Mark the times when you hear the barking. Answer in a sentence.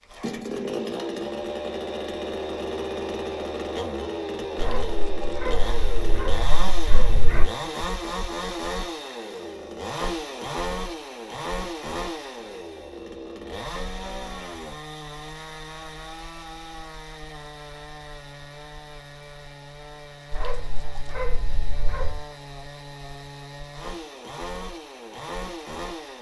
You can hear the barking from 4.5 to 7.5 s and from 20.3 to 22.2 s.